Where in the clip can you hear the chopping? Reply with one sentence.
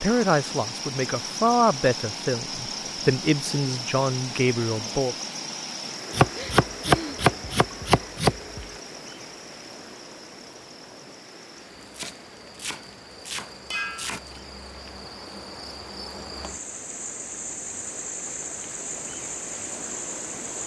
The chopping can be heard from 6.1 to 8.7 s and from 11.8 to 14.3 s.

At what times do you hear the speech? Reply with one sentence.
You can hear the speech from 0.0 to 5.2 s.